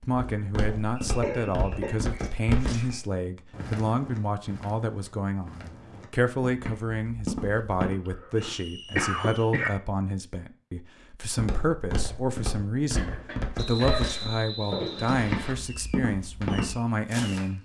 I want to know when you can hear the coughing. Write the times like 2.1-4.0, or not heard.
1.2-2.1, 8.1-9.7, 12.9-14.2.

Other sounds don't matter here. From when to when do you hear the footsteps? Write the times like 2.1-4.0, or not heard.
0.1-8.0, 11.3-17.4.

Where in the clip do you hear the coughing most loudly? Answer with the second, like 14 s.
9 s.